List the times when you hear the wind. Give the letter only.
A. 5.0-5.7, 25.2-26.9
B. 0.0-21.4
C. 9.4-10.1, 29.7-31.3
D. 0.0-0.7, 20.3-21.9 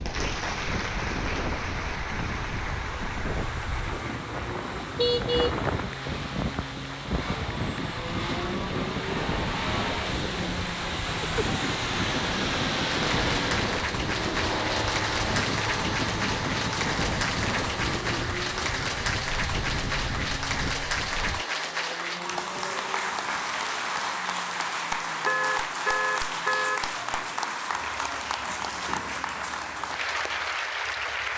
B.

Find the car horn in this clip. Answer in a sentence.
You can hear the car horn from 5.0 to 5.7 s and from 25.2 to 26.9 s.